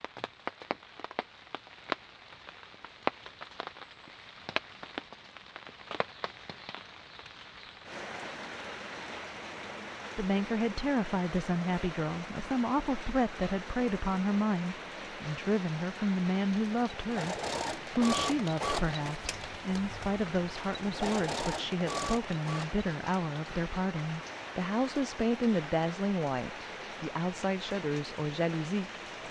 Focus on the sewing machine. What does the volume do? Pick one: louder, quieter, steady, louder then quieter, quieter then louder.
quieter then louder.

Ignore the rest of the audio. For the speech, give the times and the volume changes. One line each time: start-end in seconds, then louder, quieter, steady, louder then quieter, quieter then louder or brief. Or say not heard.
10.2-29.2 steady.